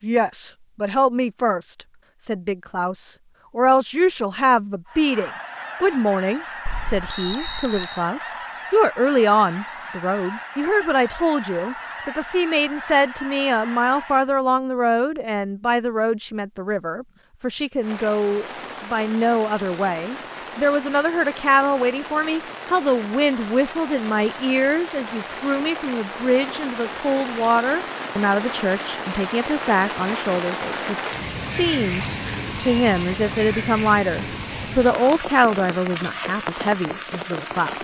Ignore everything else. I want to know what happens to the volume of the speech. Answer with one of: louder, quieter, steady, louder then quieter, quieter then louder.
steady.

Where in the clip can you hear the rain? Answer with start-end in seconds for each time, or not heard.
17.8-37.7.